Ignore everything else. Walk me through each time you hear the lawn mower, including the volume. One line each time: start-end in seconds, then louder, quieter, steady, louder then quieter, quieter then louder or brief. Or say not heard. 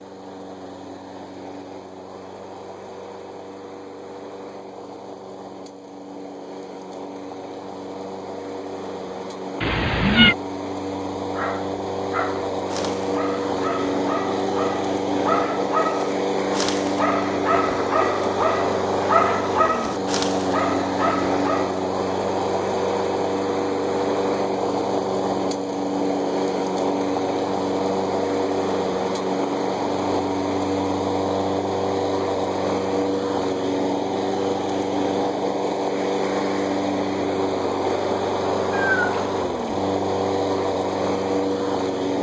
0.0-42.1 louder.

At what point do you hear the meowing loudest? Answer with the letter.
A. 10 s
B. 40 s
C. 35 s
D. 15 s
A.